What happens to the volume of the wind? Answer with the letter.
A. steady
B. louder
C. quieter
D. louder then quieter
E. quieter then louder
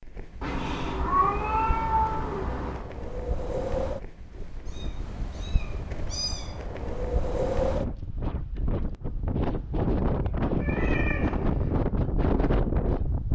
B.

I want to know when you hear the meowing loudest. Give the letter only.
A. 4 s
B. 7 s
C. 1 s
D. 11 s
C.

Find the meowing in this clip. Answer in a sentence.
The meowing can be heard from 0.4 to 2.9 s, from 4.7 to 6.7 s and from 10.5 to 11.8 s.